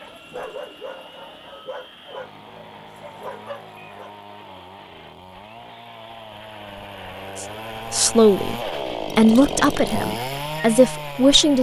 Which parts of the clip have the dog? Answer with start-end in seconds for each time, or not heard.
0.0-4.1.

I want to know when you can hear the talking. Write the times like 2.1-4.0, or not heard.
7.3-11.5.